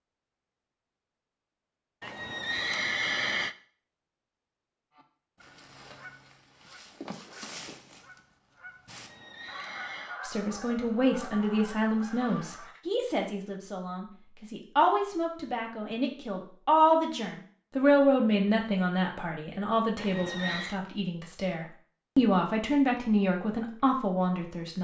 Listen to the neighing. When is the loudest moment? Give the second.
3 s.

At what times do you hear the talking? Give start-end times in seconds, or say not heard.
10.2-24.7.